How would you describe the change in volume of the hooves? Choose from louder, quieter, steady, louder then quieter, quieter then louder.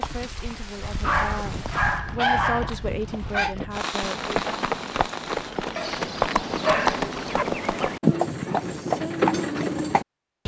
louder.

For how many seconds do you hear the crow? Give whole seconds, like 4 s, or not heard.
not heard.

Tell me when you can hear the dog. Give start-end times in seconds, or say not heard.
0.8-3.5, 5.8-7.5.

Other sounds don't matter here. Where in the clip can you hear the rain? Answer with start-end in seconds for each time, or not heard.
0.0-5.5.